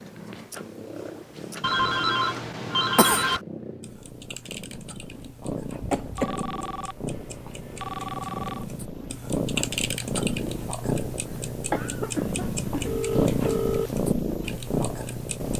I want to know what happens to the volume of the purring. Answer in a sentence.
The loudness of the purring goes up.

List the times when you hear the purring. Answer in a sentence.
The purring can be heard from 0.0 to 15.5 s.